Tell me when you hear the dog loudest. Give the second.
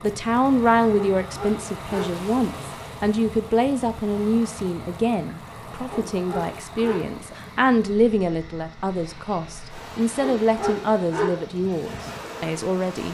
11 s.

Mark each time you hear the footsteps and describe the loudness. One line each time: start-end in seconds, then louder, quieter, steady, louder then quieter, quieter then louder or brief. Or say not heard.
not heard.